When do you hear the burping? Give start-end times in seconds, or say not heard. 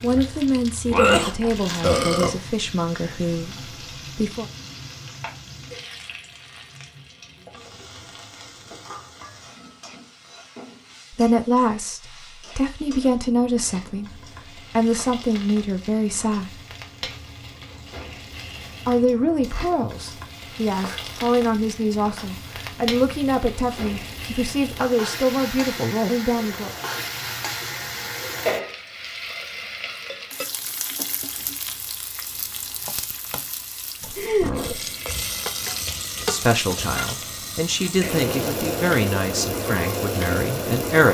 0.8-2.4, 34.2-34.9.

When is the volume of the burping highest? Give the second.
1 s.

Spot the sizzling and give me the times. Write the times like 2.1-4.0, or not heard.
0.0-41.0.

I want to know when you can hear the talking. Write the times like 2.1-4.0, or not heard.
0.0-4.5, 11.1-16.6, 18.9-26.7, 36.2-41.0.